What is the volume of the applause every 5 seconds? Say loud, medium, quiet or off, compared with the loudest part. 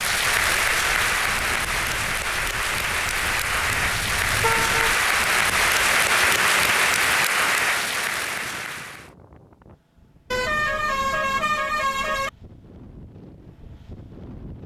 loud, loud, off.